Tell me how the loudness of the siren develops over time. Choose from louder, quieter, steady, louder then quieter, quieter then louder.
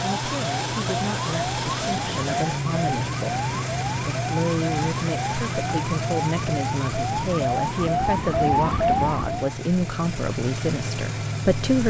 louder.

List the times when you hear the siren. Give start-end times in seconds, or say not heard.
0.0-9.6.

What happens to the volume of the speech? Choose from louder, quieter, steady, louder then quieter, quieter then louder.
louder.